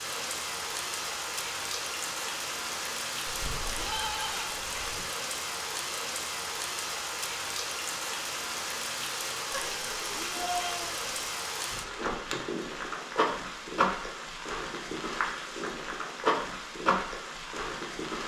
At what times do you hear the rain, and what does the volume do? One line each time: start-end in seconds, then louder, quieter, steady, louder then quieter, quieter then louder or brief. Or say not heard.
0.0-18.2 steady.